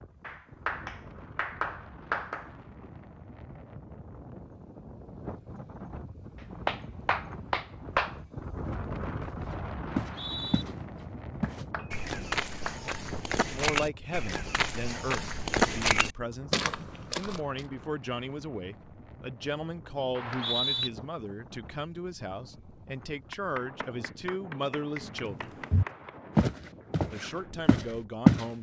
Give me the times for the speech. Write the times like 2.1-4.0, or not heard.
13.4-25.6, 27.1-28.5.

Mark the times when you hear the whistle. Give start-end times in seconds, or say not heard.
9.8-10.7, 20.1-20.9.